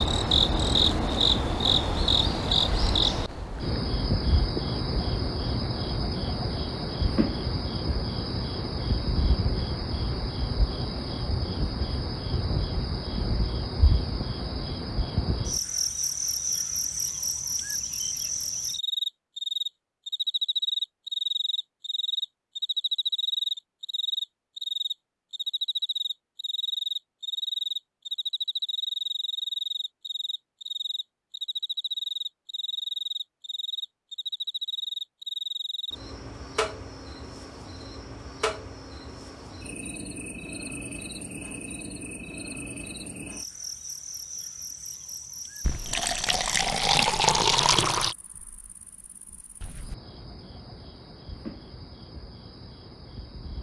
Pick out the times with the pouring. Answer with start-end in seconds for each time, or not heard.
45.6-48.1.